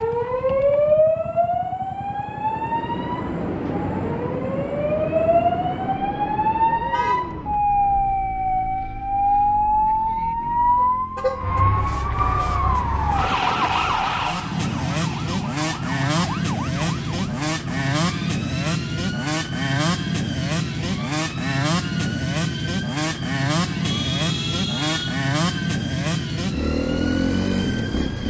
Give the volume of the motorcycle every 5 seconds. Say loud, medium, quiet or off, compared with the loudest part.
quiet, quiet, medium, loud, loud, loud.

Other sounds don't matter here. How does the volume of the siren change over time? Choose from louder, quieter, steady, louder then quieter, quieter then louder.
quieter.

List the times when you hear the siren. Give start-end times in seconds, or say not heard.
0.0-28.2.